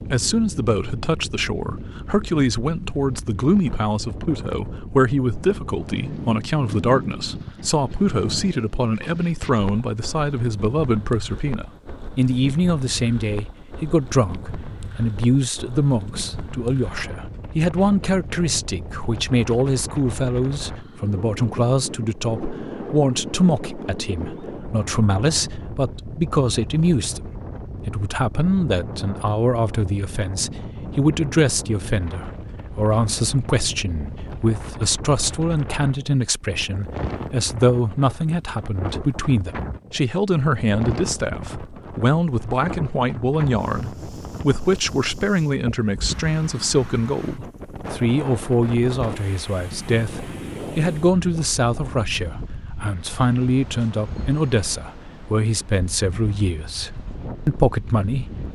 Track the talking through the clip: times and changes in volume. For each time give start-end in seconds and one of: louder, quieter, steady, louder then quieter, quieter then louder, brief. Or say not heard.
0.1-58.5 steady.